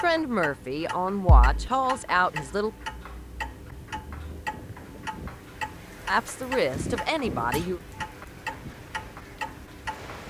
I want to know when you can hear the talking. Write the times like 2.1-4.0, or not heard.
0.0-2.7, 6.0-7.8.